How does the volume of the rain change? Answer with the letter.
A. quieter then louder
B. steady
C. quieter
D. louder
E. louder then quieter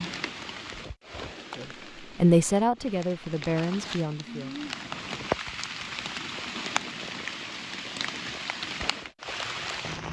D.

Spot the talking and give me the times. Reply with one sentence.
The talking can be heard from 1.6 to 4.5 s.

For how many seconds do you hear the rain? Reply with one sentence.
The rain can be heard for 10 seconds in total.